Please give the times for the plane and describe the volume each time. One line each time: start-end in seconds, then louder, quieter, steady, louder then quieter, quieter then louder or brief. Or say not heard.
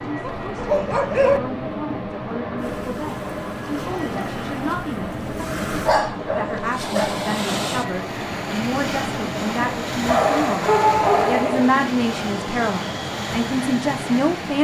0.0-14.6 steady.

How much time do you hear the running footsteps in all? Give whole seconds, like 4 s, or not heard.
not heard.